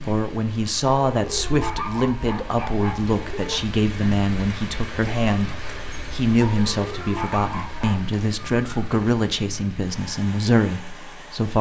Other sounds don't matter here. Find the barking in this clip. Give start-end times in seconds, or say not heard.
1.1-3.6, 6.3-8.2.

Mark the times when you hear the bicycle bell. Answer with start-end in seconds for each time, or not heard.
not heard.